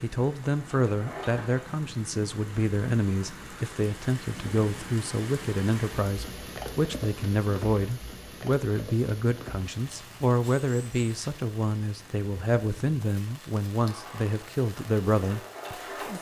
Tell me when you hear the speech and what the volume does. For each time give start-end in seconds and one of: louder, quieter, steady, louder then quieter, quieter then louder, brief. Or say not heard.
0.0-16.1 steady.